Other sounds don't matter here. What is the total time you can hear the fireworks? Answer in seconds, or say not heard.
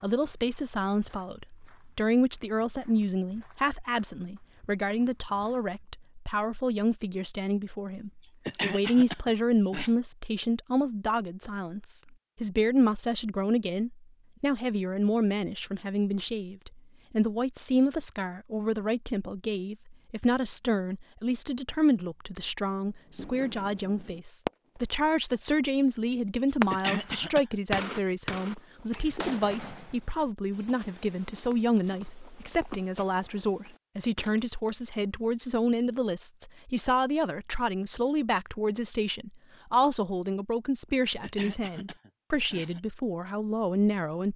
5 s.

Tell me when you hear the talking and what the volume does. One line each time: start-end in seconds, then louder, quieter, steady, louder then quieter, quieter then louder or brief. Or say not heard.
0.0-44.3 steady.